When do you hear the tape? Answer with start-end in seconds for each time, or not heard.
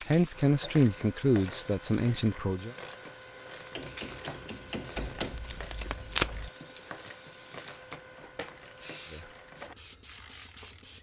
5.0-6.5.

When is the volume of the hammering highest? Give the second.
5 s.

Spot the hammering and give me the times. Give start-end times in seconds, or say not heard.
3.8-5.5.